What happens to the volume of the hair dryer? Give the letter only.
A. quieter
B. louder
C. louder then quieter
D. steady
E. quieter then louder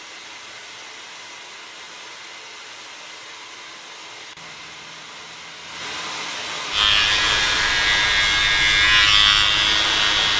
B.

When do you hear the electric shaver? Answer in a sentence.
You can hear the electric shaver from 6.7 to 10.3 s.